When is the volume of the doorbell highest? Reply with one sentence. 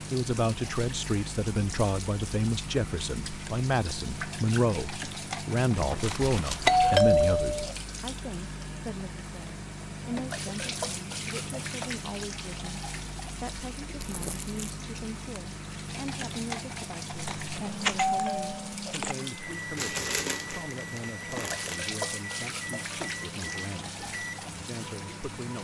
The volume of the doorbell peaks at 7 seconds.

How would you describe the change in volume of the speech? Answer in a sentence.
The volume of the speech goes down.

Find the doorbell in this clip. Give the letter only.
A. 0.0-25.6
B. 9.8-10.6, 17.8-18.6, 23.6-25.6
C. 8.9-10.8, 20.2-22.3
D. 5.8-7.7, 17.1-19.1
D.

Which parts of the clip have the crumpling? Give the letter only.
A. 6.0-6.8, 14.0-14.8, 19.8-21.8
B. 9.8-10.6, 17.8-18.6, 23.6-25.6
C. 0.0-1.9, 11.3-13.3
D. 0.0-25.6
A.